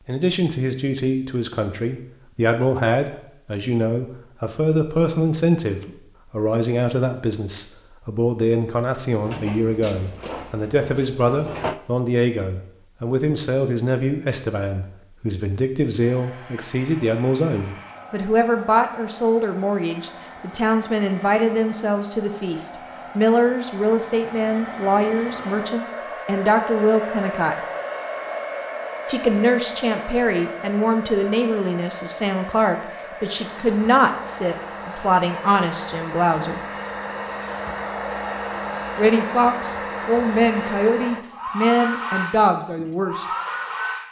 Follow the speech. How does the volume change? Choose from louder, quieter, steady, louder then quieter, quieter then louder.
steady.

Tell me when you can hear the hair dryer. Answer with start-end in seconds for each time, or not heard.
16.0-44.0.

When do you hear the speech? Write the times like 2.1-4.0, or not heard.
0.1-27.6, 29.1-36.6, 39.0-43.2.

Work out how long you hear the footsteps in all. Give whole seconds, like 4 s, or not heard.
not heard.